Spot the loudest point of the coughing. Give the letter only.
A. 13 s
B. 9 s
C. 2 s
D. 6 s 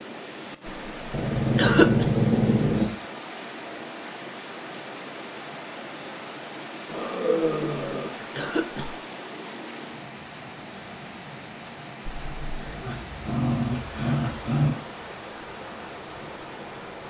C.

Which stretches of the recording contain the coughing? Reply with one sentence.
The coughing can be heard from 1.6 to 2.0 s, from 8.3 to 8.9 s and from 12.1 to 12.9 s.